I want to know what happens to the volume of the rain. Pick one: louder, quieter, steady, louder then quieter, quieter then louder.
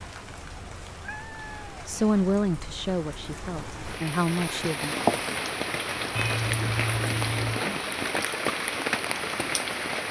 louder.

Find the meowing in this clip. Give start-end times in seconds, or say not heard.
1.0-1.8, 6.2-7.7.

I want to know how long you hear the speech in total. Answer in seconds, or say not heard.
3 s.